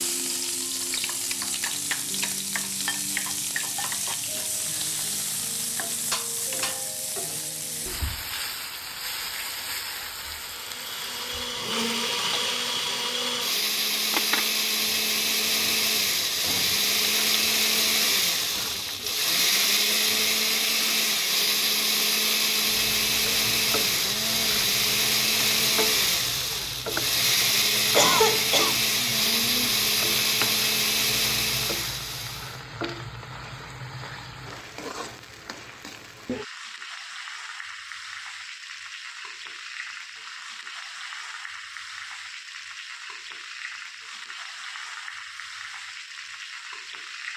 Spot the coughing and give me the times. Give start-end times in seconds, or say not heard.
27.9-28.8.